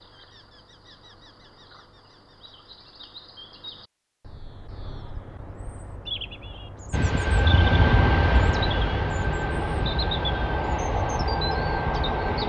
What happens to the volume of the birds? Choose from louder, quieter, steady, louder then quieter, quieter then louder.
louder.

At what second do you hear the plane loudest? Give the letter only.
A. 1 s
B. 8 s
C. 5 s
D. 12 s
B.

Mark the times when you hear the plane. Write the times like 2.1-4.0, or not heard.
6.9-12.4.